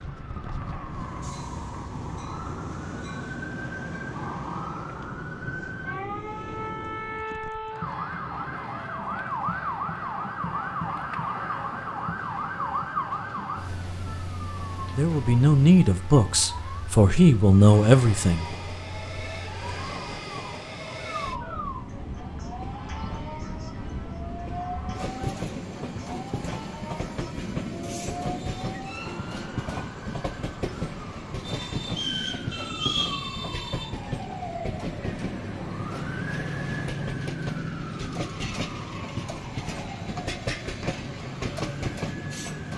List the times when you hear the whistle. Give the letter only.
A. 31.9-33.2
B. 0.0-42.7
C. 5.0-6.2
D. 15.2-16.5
A.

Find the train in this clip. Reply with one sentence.
The train can be heard from 0.0 to 42.7 s.